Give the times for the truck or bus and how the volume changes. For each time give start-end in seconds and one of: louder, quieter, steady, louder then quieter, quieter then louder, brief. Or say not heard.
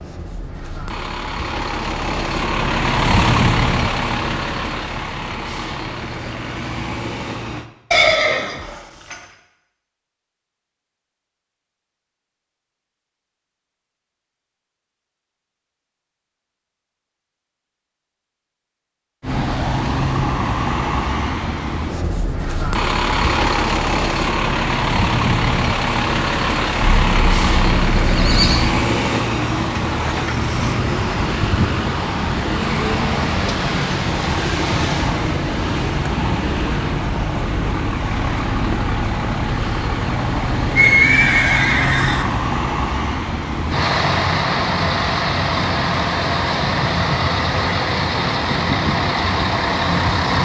0.0-7.7 louder then quieter
19.2-50.3 steady.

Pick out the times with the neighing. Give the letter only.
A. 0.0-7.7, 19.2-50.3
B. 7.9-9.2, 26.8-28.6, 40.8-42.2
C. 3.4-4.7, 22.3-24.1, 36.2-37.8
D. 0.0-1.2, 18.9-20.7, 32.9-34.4
B.